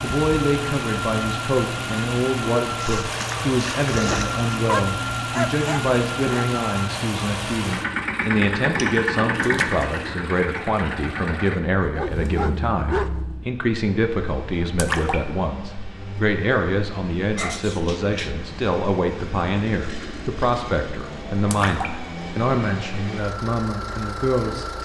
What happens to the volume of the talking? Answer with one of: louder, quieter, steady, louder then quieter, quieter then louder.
steady.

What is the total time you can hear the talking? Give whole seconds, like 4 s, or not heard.
25 s.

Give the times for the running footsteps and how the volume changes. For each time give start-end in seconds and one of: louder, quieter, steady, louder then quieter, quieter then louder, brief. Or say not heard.
not heard.